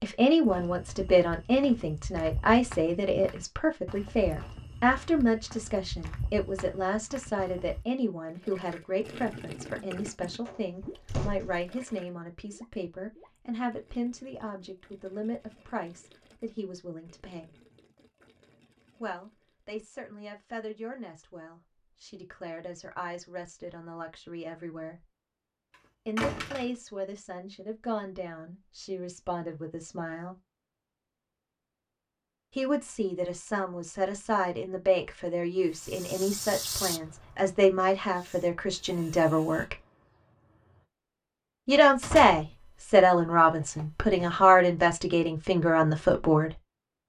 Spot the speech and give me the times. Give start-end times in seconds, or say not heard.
0.0-17.5, 19.0-25.1, 26.1-30.4, 32.5-39.8, 41.6-46.5.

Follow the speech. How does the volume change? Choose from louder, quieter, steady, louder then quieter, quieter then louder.
quieter then louder.